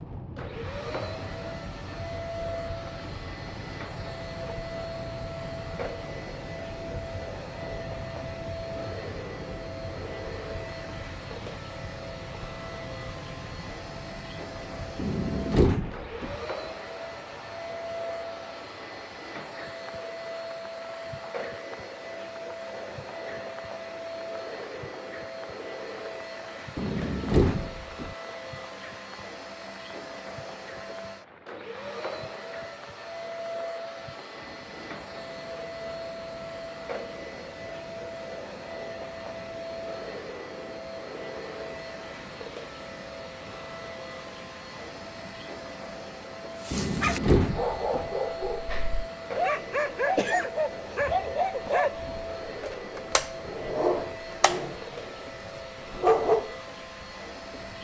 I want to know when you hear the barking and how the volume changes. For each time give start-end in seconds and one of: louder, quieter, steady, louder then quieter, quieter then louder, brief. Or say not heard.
46.6-55.2 steady
56.0-56.5 brief.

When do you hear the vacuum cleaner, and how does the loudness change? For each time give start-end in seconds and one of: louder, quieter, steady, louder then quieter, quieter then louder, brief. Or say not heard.
0.0-57.7 steady.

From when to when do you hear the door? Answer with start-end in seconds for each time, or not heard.
14.9-16.4, 26.8-28.1, 46.7-48.1.